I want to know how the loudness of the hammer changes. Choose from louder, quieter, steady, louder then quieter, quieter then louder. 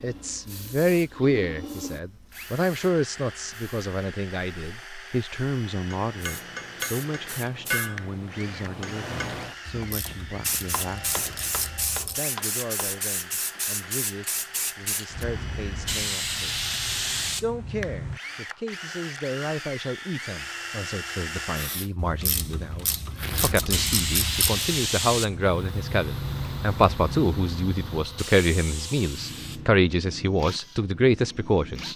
quieter.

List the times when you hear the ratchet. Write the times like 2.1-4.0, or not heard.
9.7-12.2, 21.9-24.6.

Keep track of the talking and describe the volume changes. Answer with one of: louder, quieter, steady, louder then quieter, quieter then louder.
quieter then louder.